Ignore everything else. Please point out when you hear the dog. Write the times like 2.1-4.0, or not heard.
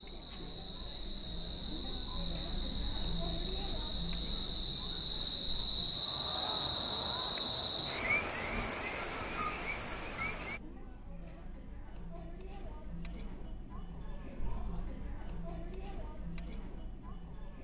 not heard.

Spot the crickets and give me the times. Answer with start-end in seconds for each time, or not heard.
0.0-10.6.